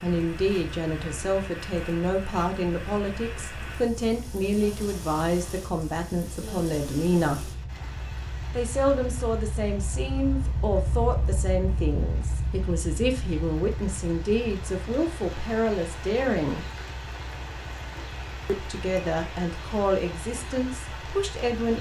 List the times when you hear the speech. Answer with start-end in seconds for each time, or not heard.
0.0-7.5, 8.5-16.6, 18.4-21.7.